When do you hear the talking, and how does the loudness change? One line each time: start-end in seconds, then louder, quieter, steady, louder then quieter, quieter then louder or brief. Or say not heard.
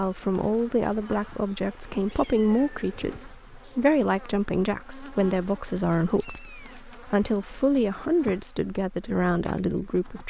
0.0-10.2 steady.